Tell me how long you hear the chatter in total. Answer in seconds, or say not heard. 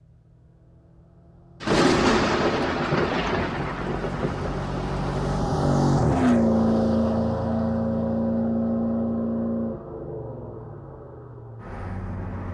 not heard.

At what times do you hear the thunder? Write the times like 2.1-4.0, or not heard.
1.6-5.4.